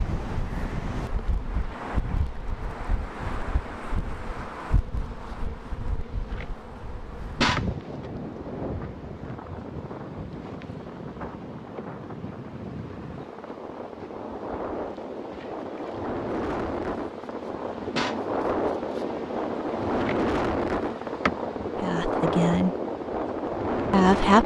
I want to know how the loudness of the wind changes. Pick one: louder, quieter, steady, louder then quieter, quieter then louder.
louder.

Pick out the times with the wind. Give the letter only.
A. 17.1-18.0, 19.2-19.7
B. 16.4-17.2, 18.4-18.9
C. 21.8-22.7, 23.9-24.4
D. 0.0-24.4
D.